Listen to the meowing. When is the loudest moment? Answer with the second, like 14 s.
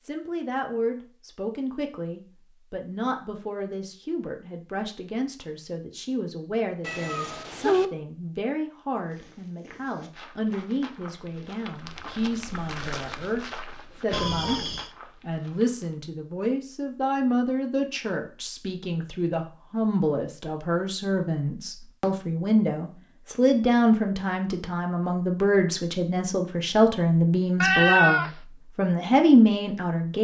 28 s.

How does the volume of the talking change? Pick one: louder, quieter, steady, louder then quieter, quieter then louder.
louder.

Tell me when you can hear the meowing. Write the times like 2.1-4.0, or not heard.
6.8-7.9, 14.1-14.9, 27.6-28.3.